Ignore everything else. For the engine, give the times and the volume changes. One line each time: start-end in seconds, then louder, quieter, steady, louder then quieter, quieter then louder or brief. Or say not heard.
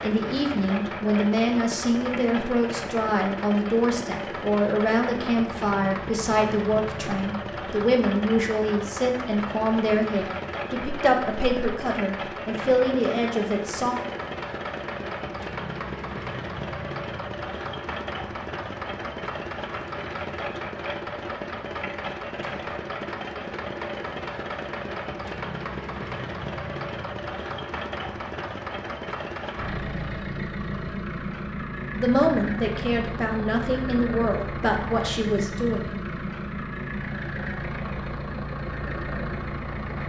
0.0-40.0 steady.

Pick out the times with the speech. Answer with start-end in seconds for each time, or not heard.
0.0-13.9, 31.9-35.8.